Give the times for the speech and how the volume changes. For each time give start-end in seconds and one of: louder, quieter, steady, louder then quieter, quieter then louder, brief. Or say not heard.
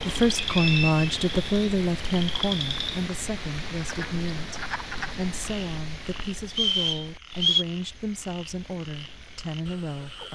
0.0-10.3 quieter.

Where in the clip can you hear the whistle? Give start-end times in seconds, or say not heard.
0.3-1.1, 6.5-7.7.